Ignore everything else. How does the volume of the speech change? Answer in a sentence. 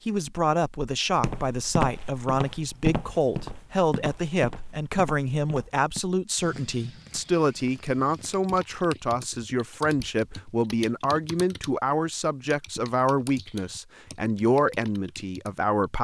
The volume of the speech stays about the same.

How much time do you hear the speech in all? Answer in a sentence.
You can hear the speech for 16 seconds altogether.